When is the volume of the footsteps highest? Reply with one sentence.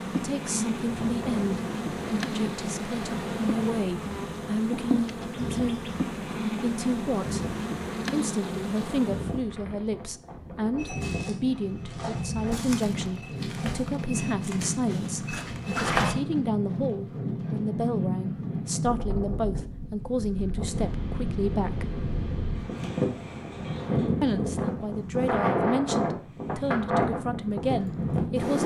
The volume of the footsteps peaks at 16 seconds.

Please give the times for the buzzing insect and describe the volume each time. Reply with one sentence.
You can hear the buzzing insect from 0.0 to 9.4 s, at a steady volume.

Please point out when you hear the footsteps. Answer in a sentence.
The footsteps can be heard from 10.8 to 16.1 s.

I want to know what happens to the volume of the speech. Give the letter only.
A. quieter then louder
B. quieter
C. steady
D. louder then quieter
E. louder
C.